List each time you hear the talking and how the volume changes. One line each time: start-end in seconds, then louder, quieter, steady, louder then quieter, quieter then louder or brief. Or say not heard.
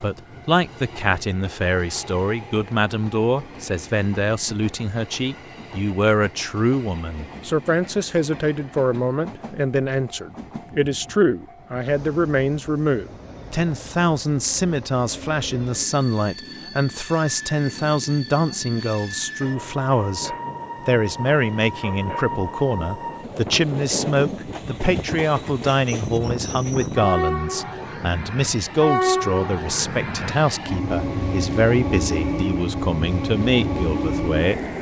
0.0-34.6 steady.